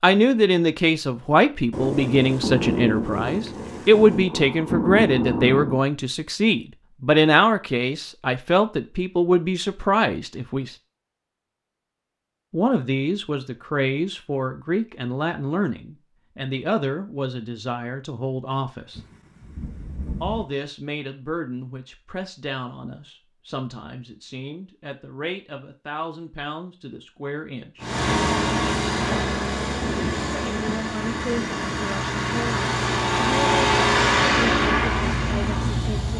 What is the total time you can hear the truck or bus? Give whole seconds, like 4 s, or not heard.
8 s.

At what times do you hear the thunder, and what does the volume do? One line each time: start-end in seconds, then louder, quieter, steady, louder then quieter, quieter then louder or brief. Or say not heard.
1.7-5.8 quieter then louder
18.9-20.4 brief
29.7-31.4 brief.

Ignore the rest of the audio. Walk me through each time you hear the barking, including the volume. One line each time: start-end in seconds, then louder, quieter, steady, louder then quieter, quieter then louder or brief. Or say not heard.
not heard.